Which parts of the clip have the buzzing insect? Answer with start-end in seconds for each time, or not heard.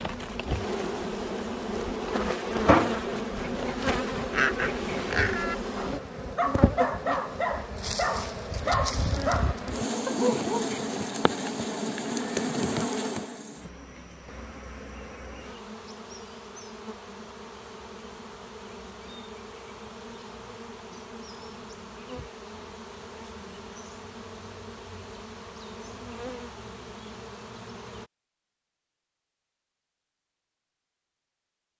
0.0-28.1.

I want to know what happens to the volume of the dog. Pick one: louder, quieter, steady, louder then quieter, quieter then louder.
steady.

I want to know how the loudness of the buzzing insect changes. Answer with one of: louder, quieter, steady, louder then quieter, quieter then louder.
quieter.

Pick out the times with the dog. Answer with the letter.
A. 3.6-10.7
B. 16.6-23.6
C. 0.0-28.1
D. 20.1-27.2
A.